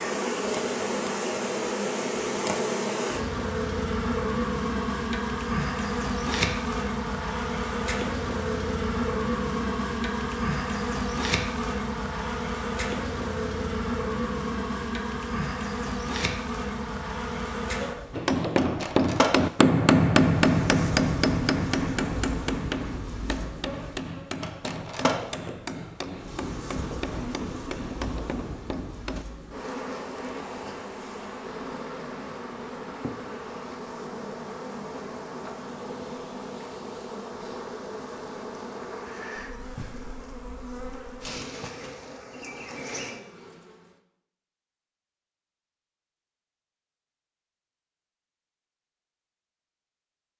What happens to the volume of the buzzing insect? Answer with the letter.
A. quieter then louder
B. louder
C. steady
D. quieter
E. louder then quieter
D.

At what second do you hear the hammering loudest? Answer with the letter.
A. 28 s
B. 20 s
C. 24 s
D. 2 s
B.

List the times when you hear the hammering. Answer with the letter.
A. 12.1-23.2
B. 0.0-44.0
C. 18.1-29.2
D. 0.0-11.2
C.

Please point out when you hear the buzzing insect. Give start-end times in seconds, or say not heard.
0.0-44.0.